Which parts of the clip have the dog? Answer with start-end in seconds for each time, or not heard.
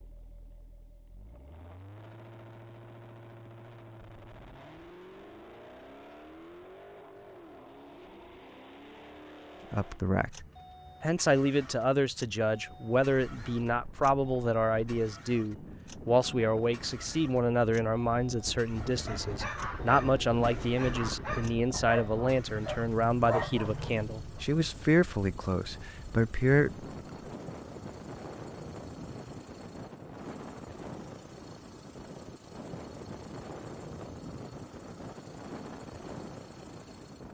18.9-24.4.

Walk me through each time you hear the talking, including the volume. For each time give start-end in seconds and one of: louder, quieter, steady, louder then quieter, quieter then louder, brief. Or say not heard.
9.7-26.9 steady.